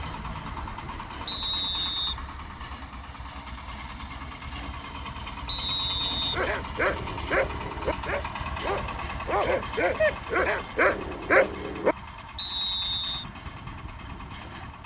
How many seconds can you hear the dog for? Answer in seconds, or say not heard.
6 s.